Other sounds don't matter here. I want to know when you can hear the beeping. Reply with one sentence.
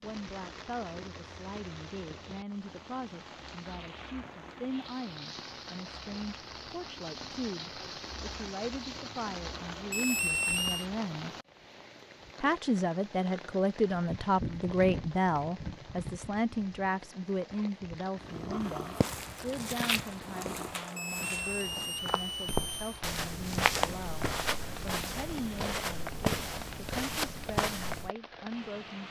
You can hear the beeping from 9.9 to 10.8 s and from 20.9 to 23.0 s.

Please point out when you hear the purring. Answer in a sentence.
You can hear the purring from 18.1 to 20.8 s.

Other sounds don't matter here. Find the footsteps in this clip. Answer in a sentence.
The footsteps can be heard from 18.6 to 28.1 s.